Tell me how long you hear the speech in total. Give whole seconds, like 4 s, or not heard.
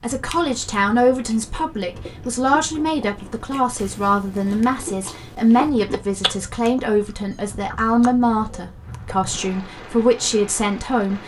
11 s.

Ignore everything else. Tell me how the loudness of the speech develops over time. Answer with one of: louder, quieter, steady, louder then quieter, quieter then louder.
steady.